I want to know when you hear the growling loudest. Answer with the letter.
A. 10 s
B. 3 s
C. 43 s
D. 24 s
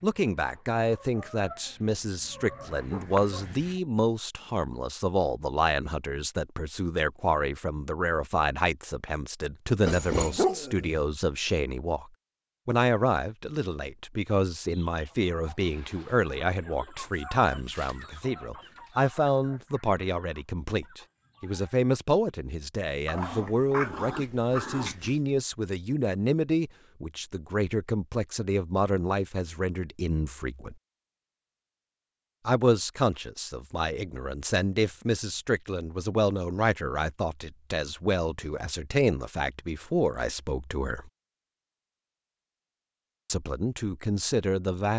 A.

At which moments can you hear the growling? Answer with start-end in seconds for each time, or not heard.
9.8-11.0, 23.1-25.1.